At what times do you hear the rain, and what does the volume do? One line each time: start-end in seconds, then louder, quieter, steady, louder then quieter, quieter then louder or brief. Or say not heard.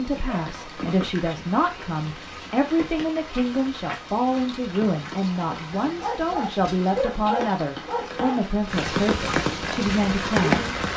0.0-10.9 louder.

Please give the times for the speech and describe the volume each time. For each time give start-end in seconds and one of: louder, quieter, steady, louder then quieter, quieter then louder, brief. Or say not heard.
0.0-10.7 steady.